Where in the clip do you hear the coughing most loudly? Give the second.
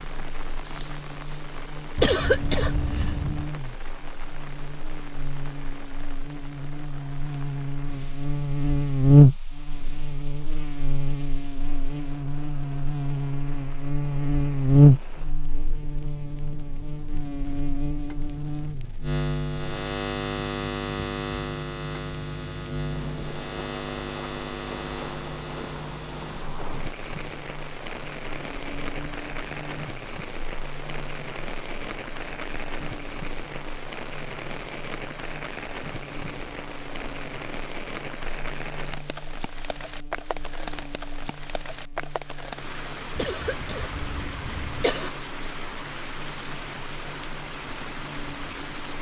2 s.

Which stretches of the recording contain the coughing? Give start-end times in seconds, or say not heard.
1.9-3.5, 43.1-45.1.